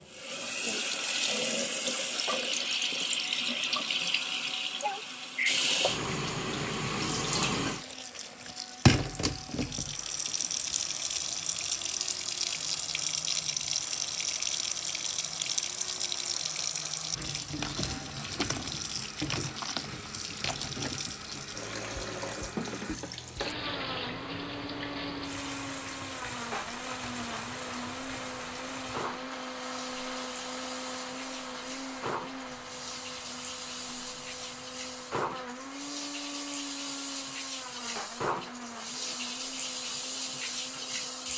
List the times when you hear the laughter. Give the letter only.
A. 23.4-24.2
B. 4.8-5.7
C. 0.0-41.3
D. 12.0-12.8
B.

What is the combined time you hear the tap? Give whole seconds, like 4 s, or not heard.
41 s.